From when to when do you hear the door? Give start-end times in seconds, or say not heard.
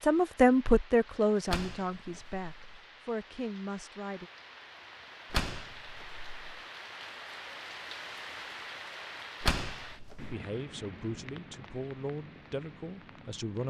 1.4-2.8, 5.3-6.6, 9.4-10.3.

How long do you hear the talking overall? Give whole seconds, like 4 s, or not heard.
8 s.